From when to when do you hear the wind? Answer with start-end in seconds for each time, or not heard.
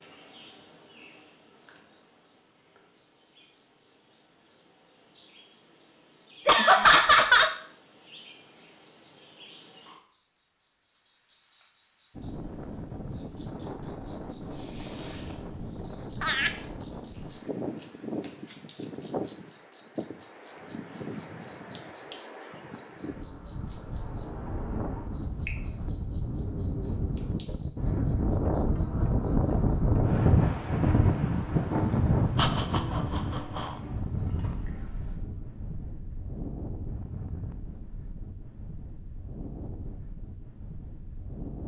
12.1-41.6.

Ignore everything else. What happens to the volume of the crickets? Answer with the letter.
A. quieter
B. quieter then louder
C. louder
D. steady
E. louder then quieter
E.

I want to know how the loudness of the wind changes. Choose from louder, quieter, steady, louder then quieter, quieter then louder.
louder then quieter.